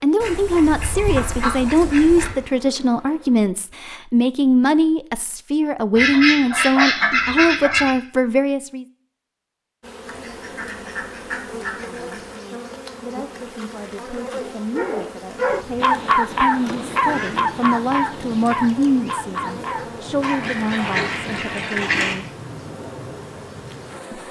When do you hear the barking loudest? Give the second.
16 s.